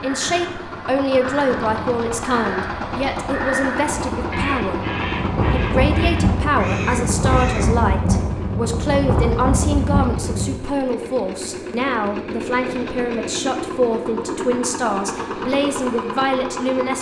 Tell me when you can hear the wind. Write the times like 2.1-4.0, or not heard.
0.1-10.5.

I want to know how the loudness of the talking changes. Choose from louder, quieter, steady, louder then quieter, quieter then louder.
steady.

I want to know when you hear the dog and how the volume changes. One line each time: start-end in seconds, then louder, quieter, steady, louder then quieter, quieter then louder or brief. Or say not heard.
not heard.